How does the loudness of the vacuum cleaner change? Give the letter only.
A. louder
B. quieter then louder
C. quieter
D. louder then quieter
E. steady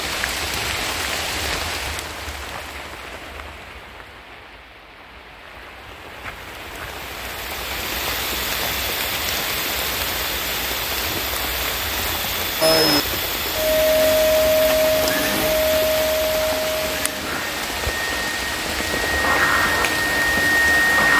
B.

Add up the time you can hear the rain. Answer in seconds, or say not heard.
21 s.